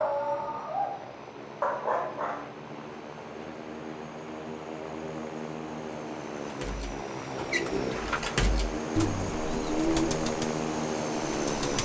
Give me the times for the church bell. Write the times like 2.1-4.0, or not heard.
not heard.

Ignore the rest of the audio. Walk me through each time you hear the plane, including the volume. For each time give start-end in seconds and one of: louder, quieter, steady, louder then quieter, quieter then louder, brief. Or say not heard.
0.0-11.7 louder.